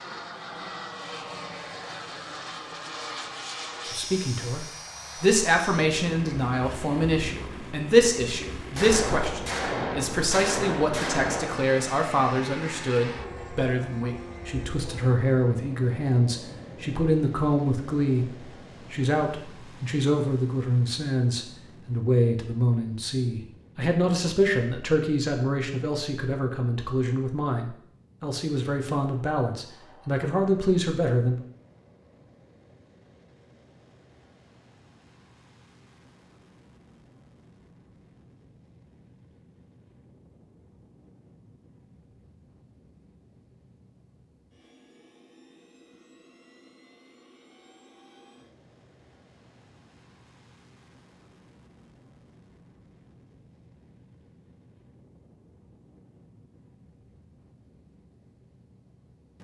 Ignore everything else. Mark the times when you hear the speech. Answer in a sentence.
The speech can be heard from 3.9 to 31.4 s.